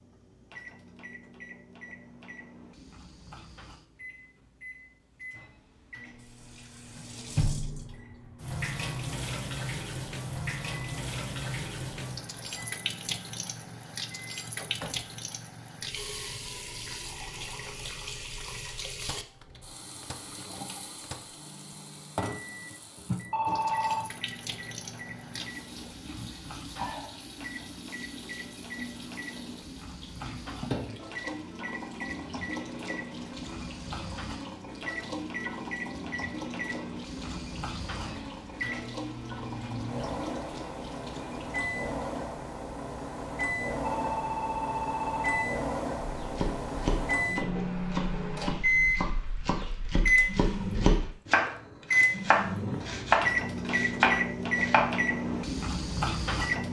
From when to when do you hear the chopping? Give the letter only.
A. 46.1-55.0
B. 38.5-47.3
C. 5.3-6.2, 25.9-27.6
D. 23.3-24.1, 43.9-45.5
A.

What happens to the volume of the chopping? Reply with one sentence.
The loudness of the chopping goes up.